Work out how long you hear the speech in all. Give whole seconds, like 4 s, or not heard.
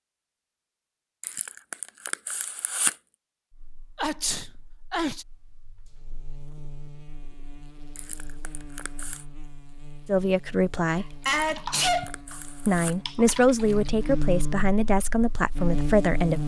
5 s.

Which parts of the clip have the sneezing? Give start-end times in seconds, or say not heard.
4.0-5.2, 10.9-12.2.